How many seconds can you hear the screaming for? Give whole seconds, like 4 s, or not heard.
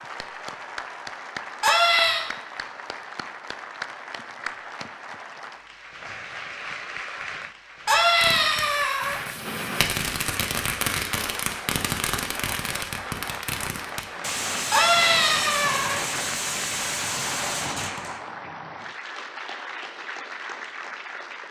3 s.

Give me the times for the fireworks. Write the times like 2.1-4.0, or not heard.
8.2-18.2.